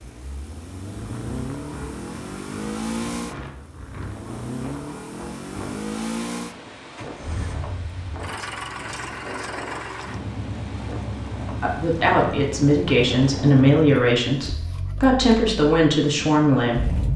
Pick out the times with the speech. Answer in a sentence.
You can hear the speech from 11.6 to 17.1 s.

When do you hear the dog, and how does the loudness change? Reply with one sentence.
The dog can't be heard in this clip.